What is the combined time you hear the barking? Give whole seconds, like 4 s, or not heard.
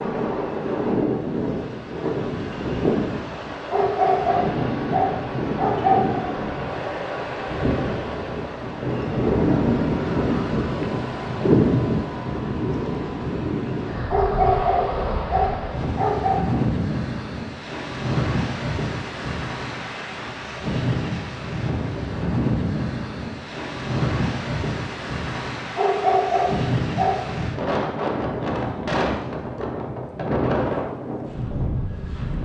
6 s.